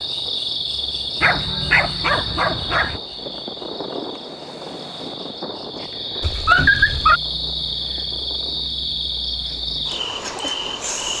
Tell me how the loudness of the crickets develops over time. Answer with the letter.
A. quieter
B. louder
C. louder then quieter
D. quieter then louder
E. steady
D.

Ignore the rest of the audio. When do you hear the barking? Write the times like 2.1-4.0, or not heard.
1.2-3.0, 6.2-7.2.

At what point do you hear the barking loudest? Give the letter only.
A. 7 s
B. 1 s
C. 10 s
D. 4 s
A.